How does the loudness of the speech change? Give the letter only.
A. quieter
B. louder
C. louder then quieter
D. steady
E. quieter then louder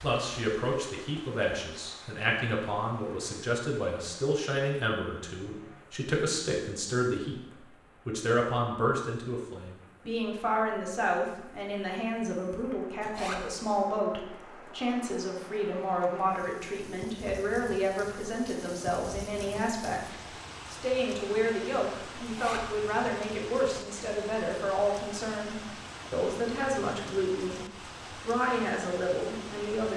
D.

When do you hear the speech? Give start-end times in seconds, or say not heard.
0.0-29.9.